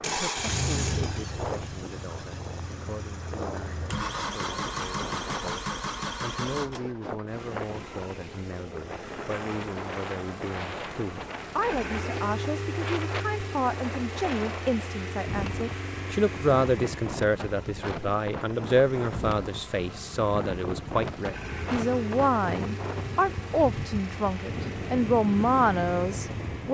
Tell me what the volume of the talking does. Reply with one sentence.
The volume of the talking goes up.